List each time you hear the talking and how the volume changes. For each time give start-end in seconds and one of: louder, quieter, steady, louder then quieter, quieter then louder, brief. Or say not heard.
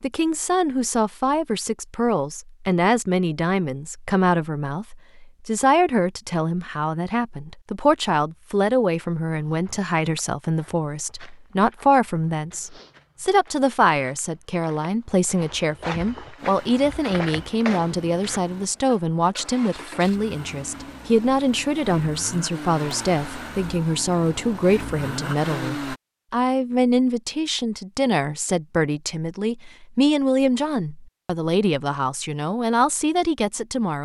0.0-34.0 steady.